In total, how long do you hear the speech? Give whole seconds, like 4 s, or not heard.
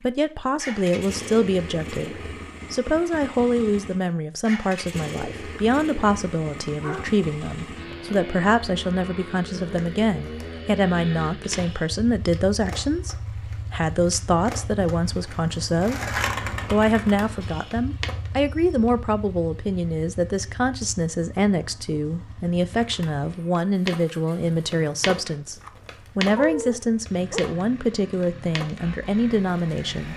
29 s.